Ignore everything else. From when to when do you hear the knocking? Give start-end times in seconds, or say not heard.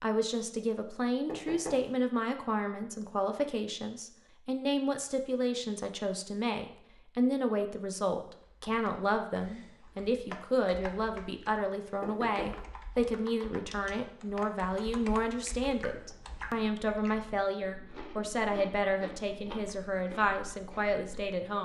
1.2-1.9, 12.0-12.6.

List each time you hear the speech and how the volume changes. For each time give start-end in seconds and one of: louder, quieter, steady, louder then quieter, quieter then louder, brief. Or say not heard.
0.0-21.5 steady.